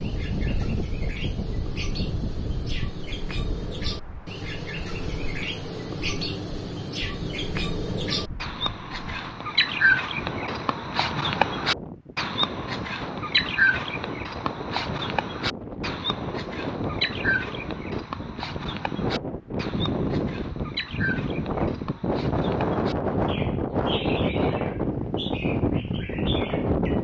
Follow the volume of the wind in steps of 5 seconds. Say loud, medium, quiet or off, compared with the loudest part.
medium, quiet, medium, medium, loud, loud.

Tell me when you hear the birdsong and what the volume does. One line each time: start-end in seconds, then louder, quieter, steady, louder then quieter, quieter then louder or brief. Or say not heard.
0.0-27.0 louder then quieter.